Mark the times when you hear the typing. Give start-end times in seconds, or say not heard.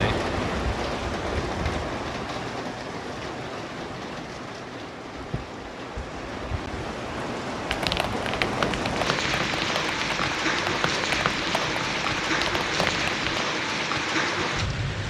7.7-13.4.